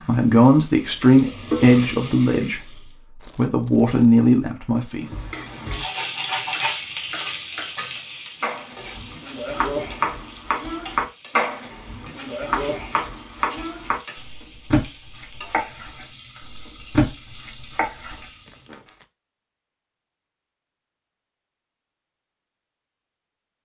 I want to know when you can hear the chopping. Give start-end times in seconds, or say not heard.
6.5-18.2.